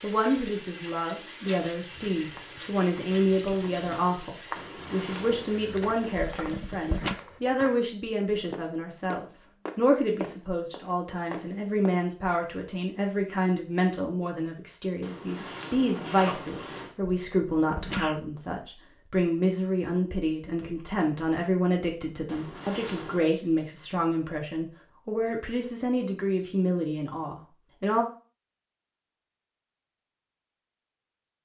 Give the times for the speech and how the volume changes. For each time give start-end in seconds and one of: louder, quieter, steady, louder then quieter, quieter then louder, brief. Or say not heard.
0.0-28.1 steady.